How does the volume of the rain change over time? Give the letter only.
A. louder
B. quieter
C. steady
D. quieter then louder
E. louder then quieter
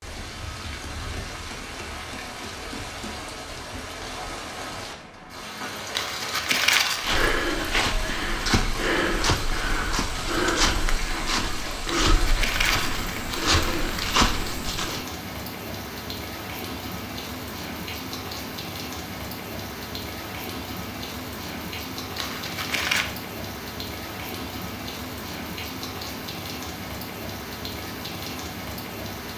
C.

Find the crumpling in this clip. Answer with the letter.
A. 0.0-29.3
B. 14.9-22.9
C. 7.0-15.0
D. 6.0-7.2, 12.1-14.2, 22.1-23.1
D.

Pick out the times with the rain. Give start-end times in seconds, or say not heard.
0.0-29.3.